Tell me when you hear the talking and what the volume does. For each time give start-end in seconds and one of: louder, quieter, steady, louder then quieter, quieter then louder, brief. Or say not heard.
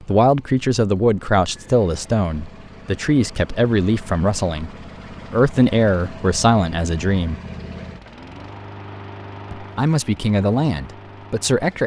0.0-7.4 steady
9.5-11.8 brief.